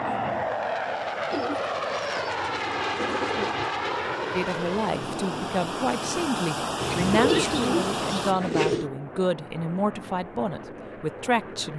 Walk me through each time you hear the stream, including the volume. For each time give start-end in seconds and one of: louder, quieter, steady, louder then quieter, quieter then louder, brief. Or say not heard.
0.0-8.3 louder.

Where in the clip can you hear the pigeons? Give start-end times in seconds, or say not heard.
1.3-3.7, 6.8-8.8.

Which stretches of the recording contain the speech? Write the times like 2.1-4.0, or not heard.
4.3-11.7.